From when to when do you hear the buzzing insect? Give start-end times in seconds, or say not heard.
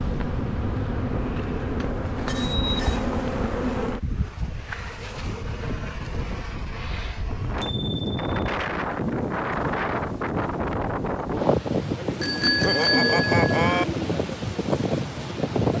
0.0-7.8.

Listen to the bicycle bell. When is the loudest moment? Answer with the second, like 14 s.
13 s.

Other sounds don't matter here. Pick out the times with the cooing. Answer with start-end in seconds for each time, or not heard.
12.1-14.1.